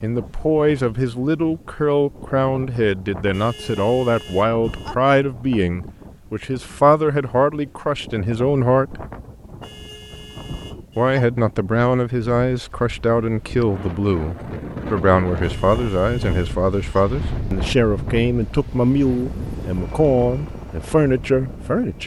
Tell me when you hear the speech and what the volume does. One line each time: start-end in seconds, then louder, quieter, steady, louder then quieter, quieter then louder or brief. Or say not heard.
0.0-9.1 steady
10.9-22.0 steady.